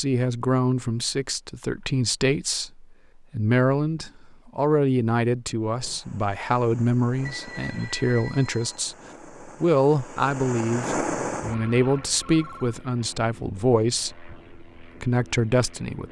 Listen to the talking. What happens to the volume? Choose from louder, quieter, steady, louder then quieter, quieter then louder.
steady.